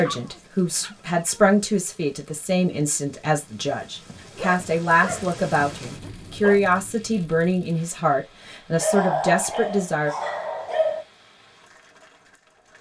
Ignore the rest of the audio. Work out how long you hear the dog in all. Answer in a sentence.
You can hear the dog for 6 seconds altogether.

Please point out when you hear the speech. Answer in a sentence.
The speech can be heard from 0.0 to 10.1 s.